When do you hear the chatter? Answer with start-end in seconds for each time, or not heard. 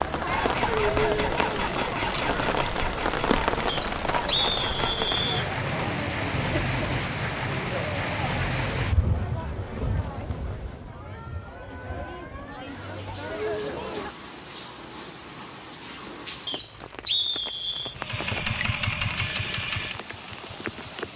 0.0-14.2.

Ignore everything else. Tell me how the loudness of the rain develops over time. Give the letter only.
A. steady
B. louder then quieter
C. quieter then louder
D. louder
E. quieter
E.